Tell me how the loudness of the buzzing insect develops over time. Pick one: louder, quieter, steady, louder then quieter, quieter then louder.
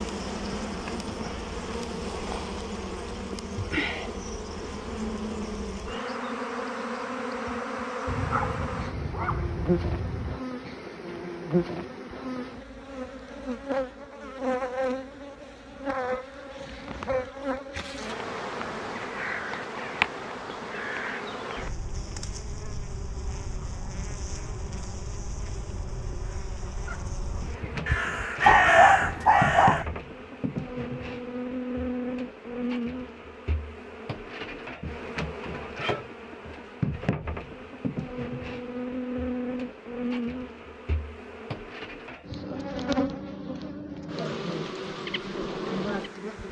steady.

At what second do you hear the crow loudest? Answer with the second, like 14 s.
29 s.